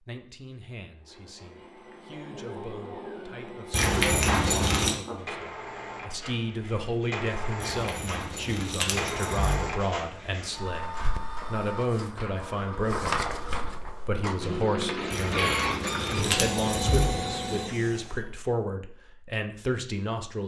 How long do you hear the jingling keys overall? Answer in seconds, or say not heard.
5 s.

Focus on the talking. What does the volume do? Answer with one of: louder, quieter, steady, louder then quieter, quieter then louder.
louder.